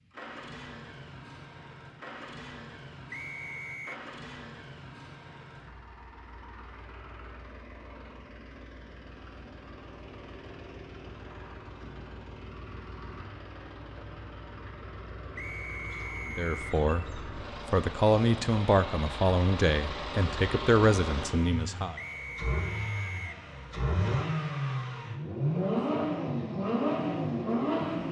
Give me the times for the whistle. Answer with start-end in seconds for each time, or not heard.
3.1-4.0, 15.3-16.8, 21.9-23.4.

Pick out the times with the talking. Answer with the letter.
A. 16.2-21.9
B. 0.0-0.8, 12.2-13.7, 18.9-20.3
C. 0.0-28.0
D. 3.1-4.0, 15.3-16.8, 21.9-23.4
A.